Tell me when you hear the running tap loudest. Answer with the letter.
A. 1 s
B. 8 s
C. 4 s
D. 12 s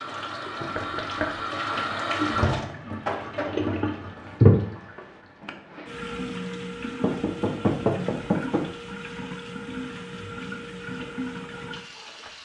C.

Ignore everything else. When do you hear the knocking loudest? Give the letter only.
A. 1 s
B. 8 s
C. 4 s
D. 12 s
B.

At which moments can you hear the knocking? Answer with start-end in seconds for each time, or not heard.
0.8-1.4, 7.0-8.7.